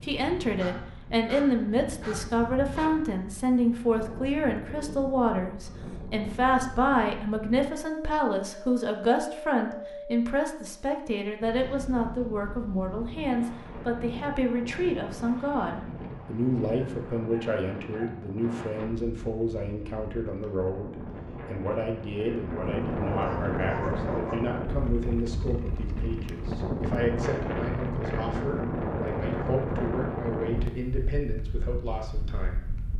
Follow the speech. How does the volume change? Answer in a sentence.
The loudness of the speech goes down.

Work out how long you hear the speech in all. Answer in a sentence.
You can hear the speech for 33 seconds altogether.